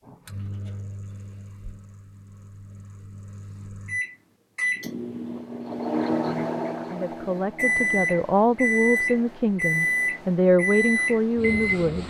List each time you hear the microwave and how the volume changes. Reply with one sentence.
You can hear the microwave from 0.1 to 12.0 s, getting louder.